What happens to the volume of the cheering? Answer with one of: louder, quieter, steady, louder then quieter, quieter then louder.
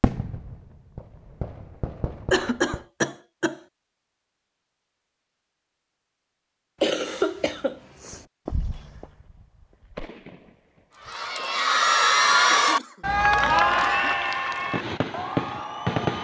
quieter.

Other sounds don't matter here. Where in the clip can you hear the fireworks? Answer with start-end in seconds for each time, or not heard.
0.0-2.8, 8.1-11.2, 14.6-16.1.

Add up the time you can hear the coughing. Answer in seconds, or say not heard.
4 s.